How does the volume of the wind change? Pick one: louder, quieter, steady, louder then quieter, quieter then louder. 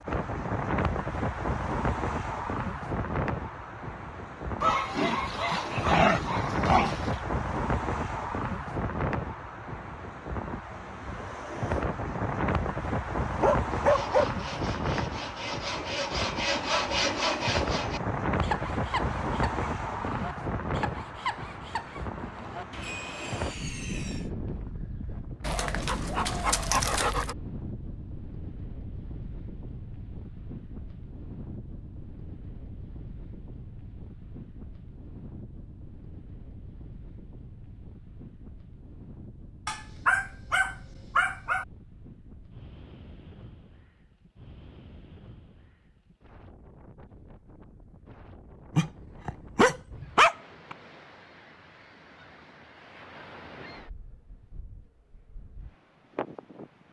quieter.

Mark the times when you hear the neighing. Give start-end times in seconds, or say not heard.
not heard.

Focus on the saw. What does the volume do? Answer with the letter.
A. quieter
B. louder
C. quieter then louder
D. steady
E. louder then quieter
E.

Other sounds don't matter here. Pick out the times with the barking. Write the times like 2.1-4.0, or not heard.
4.6-7.2, 13.4-14.3, 25.4-27.4, 39.6-41.6, 48.8-50.8.